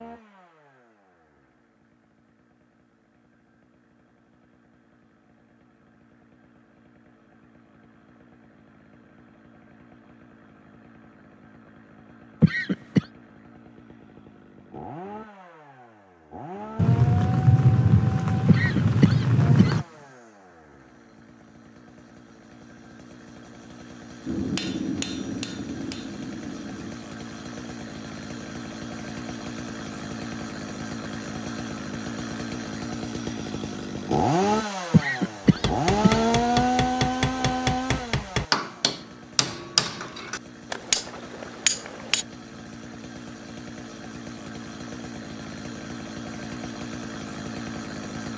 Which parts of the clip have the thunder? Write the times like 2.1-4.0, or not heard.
16.8-19.9.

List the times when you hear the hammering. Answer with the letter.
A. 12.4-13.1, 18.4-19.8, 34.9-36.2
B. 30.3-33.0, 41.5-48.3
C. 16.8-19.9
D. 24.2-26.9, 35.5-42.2
D.